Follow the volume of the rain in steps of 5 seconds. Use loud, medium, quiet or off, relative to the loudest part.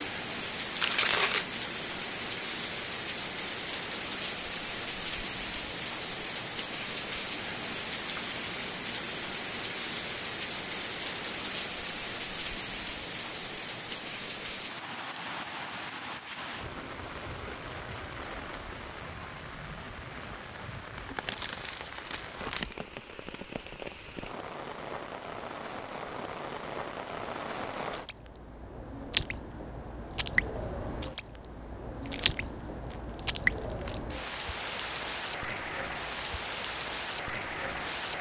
loud, loud, loud, medium, medium, loud, loud, loud.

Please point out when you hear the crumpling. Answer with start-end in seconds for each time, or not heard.
0.8-1.4, 20.9-22.8, 32.0-34.0.